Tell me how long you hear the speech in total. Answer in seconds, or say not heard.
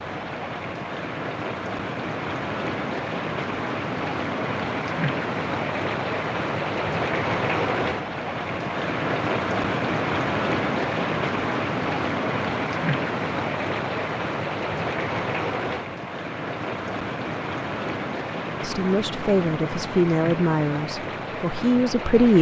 4 s.